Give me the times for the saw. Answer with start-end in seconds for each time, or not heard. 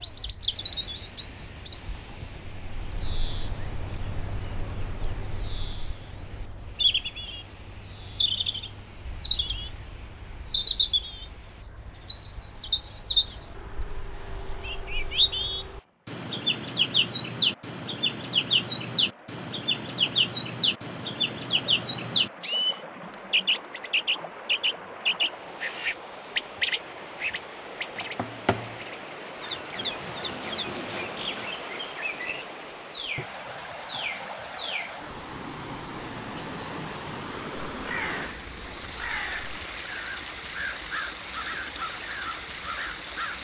29.8-31.6.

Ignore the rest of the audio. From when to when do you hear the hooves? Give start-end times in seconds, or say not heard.
not heard.